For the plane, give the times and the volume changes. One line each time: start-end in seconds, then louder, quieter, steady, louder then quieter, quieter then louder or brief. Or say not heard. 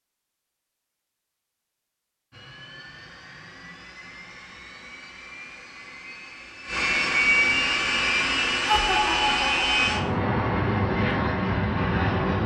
2.3-12.4 louder.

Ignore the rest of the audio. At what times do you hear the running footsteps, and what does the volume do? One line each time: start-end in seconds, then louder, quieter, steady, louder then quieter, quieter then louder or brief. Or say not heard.
not heard.